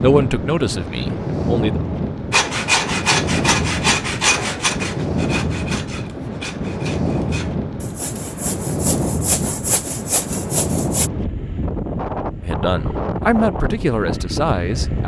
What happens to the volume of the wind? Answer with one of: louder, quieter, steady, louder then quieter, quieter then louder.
steady.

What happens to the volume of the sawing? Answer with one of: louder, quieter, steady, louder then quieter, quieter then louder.
quieter then louder.